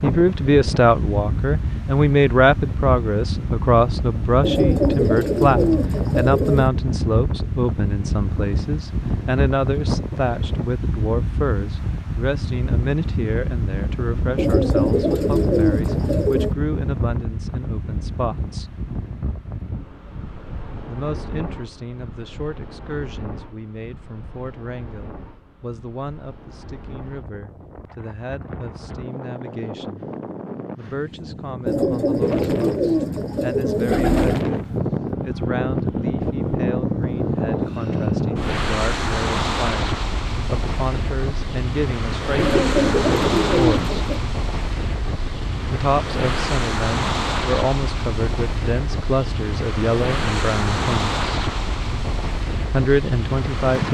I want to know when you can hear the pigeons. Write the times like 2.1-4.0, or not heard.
4.4-6.7, 14.3-16.6, 31.6-34.5, 42.4-44.2.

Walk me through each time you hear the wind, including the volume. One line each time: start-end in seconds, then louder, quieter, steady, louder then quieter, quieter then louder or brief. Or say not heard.
0.0-53.8 quieter then louder.